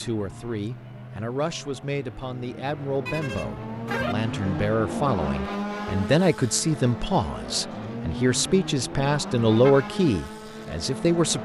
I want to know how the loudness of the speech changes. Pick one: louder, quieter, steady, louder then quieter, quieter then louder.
louder.